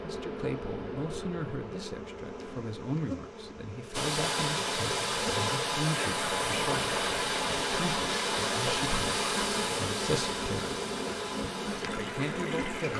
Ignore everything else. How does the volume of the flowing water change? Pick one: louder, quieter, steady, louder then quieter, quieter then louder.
quieter.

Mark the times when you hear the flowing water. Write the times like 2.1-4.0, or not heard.
3.9-12.9.